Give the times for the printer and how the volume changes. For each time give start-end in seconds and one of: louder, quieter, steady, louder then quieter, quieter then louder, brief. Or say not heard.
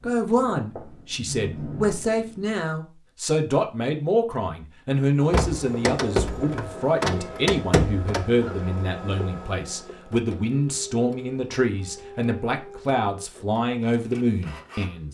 5.2-15.1 quieter.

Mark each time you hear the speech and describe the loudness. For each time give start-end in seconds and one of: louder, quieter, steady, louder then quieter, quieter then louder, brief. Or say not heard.
0.0-15.1 steady.